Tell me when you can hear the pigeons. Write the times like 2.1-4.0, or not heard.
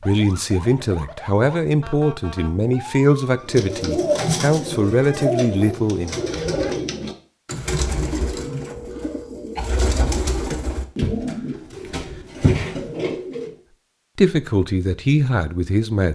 3.4-13.5.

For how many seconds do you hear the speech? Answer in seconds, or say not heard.
8 s.